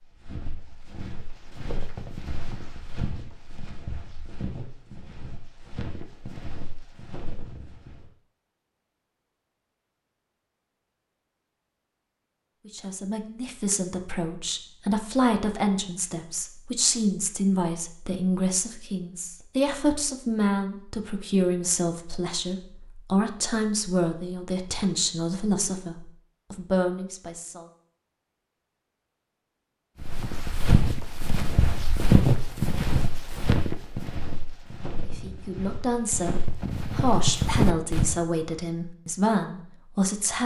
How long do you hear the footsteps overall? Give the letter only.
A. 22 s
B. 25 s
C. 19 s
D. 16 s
D.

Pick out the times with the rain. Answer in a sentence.
You can't hear the rain here.